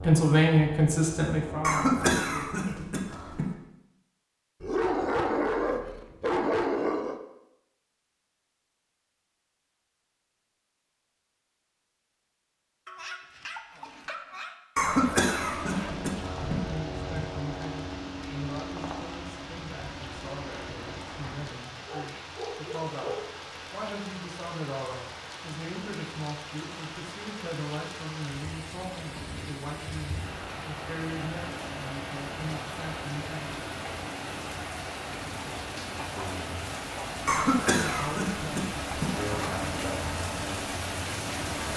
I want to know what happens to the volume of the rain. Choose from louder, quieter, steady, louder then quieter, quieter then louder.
louder.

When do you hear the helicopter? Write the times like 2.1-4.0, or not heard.
0.0-2.5, 14.8-21.6, 39.0-41.7.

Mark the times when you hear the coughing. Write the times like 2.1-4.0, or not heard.
1.6-3.5, 14.8-16.6, 37.2-39.1.